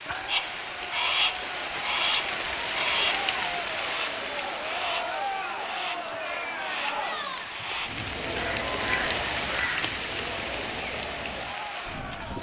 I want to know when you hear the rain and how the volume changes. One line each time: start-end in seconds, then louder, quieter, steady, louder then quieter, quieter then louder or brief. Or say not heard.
0.0-12.3 quieter then louder.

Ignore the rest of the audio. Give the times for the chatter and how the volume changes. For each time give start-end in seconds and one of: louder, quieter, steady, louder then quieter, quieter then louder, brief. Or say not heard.
0.1-12.3 louder then quieter.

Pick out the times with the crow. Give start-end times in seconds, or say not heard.
0.2-9.8.